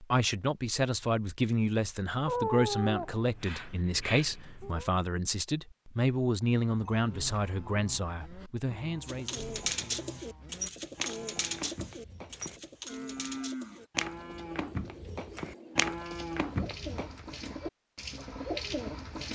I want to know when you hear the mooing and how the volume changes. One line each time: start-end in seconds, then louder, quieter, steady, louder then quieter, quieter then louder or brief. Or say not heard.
6.7-17.2 louder.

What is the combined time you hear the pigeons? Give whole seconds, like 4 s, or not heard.
10 s.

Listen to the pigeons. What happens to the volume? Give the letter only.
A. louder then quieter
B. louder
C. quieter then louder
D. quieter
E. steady
C.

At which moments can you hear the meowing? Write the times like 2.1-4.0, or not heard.
2.2-4.9.